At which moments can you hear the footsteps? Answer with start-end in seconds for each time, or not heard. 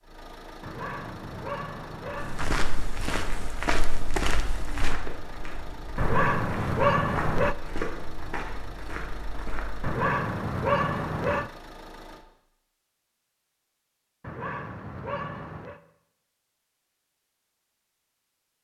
2.1-9.9.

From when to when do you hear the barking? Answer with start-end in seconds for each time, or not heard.
0.6-2.6, 6.0-7.5, 9.8-11.5, 14.2-15.8.